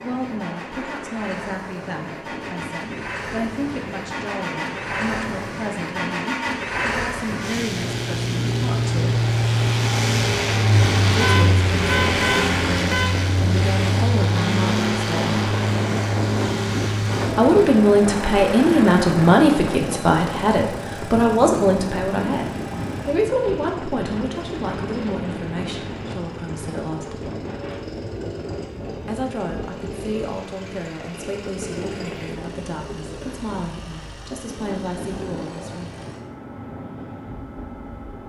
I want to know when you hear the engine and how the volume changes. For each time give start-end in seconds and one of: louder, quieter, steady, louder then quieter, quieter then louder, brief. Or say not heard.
0.0-38.2 louder then quieter.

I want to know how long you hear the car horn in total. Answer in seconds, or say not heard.
2 s.